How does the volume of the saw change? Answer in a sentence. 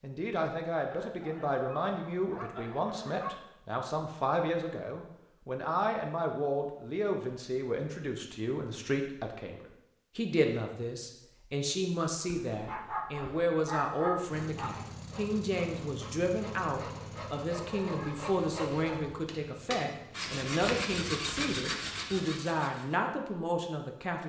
The volume of the saw goes up.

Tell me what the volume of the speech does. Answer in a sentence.
The loudness of the speech stays about the same.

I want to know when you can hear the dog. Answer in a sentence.
The dog can be heard from 0.9 to 3.4 s, from 12.2 to 14.7 s and from 17.6 to 19.2 s.